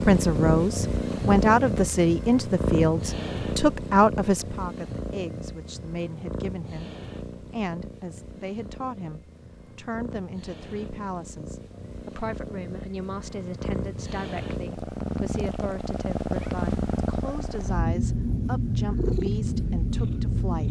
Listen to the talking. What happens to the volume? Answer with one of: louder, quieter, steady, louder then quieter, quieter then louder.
quieter.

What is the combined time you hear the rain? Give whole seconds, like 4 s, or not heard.
not heard.